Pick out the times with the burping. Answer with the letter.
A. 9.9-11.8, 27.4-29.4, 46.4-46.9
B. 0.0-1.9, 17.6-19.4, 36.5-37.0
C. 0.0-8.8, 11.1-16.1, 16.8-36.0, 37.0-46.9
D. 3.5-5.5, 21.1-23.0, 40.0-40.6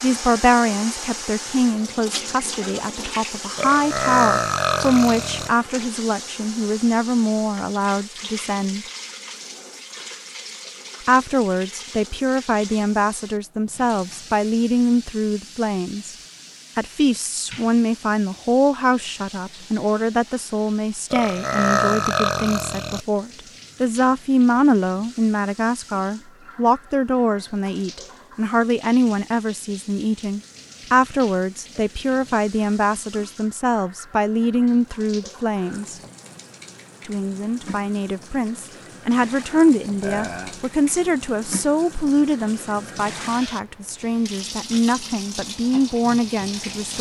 D.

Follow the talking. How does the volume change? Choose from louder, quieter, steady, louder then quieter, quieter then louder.
steady.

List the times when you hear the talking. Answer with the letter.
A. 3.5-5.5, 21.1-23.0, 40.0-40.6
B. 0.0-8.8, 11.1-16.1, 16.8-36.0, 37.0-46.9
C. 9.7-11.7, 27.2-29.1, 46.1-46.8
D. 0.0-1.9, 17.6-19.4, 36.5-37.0
B.